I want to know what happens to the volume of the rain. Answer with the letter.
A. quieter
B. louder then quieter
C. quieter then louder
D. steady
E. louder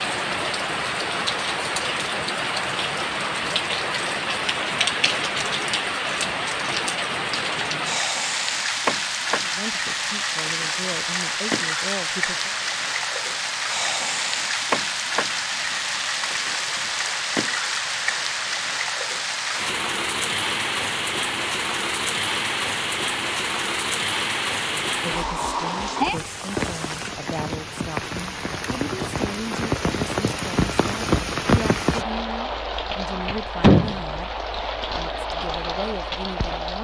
D.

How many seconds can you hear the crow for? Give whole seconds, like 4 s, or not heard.
not heard.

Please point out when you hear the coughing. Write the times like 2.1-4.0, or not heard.
not heard.